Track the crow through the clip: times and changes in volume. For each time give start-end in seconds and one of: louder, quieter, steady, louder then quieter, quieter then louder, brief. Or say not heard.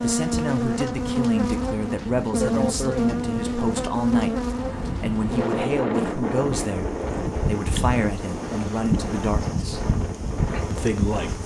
not heard.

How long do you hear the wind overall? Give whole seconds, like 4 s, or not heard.
11 s.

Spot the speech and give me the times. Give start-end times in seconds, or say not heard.
0.0-9.8, 10.7-11.4.